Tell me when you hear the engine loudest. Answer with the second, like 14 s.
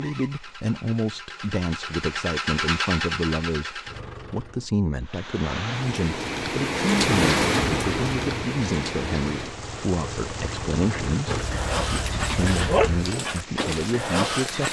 3 s.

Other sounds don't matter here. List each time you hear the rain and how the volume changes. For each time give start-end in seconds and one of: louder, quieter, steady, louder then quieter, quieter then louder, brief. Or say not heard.
5.0-14.6 quieter.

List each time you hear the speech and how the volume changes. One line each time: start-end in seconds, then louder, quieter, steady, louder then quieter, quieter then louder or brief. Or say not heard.
0.0-14.6 steady.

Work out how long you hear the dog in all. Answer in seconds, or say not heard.
3 s.